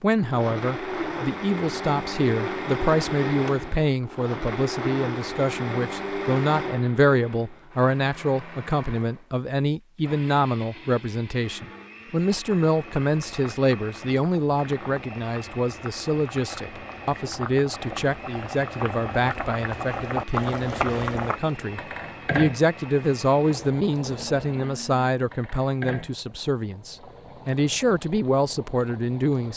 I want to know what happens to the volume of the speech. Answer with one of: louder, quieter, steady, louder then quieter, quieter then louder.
steady.